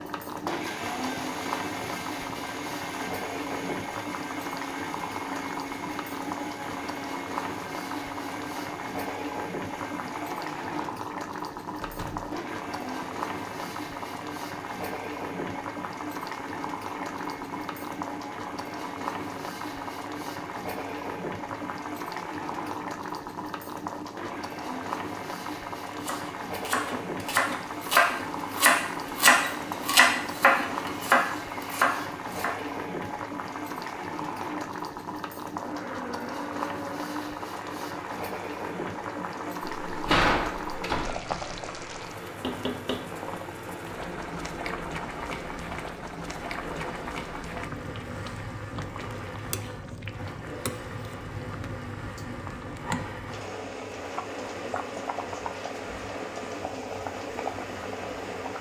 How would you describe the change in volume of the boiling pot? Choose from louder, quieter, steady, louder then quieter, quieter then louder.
steady.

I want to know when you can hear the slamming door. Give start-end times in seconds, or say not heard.
11.8-12.3, 39.6-41.1.